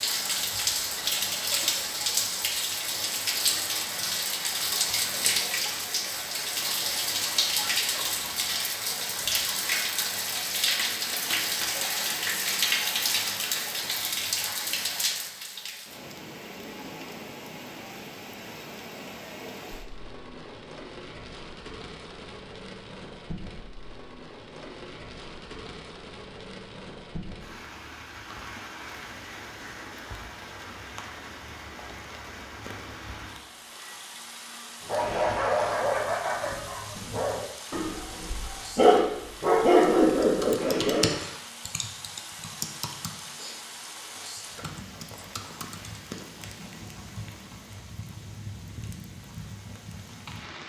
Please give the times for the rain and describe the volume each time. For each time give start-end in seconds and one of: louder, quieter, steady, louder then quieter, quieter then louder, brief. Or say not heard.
0.0-50.6 quieter.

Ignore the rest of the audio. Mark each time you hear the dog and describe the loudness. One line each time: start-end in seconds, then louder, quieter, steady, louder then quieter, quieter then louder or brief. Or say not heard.
34.8-41.2 quieter then louder.